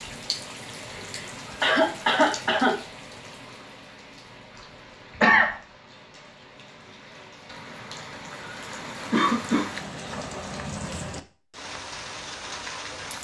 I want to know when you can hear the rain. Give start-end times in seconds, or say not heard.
0.0-13.1.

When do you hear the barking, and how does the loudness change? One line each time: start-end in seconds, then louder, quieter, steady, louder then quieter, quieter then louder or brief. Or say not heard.
not heard.